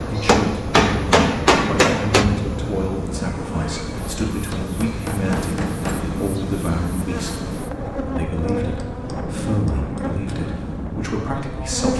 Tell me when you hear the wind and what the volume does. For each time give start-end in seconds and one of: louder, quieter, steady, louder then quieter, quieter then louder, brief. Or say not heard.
0.0-11.9 steady.